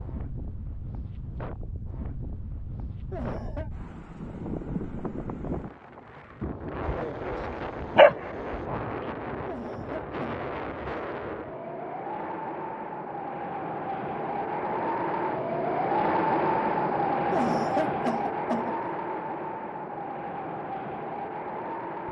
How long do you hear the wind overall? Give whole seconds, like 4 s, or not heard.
22 s.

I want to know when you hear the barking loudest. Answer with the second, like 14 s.
8 s.